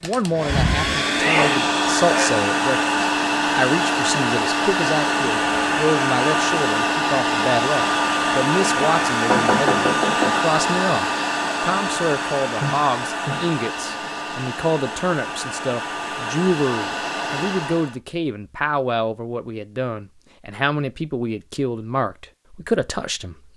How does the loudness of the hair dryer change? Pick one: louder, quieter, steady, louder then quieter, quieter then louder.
quieter.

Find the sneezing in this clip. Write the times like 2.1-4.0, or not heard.
1.1-2.3, 12.6-13.5.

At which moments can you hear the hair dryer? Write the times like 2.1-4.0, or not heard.
0.0-17.9.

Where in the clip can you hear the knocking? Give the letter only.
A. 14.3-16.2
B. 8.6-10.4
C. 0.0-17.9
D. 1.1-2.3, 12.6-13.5
B.